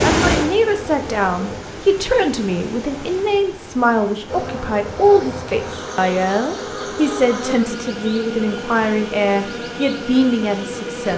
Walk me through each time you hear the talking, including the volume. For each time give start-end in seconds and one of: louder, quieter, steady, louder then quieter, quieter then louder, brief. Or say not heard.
0.0-11.1 steady.